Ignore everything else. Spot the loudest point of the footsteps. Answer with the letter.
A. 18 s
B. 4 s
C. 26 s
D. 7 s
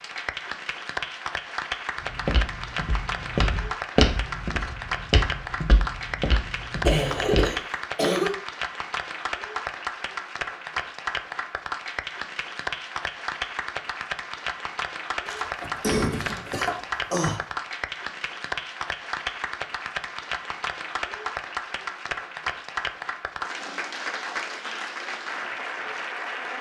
B.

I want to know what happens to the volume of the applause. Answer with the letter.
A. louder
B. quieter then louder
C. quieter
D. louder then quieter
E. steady
E.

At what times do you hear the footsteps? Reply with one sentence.
You can hear the footsteps from 2.0 to 7.5 s.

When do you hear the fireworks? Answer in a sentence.
You can't hear the fireworks here.